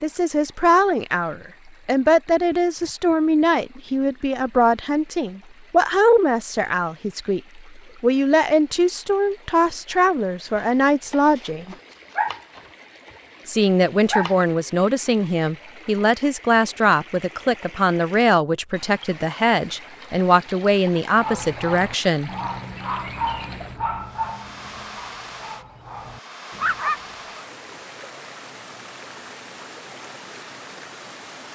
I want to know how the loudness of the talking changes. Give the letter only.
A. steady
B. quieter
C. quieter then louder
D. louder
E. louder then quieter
A.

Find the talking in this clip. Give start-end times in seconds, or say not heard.
0.0-11.8, 13.4-22.3.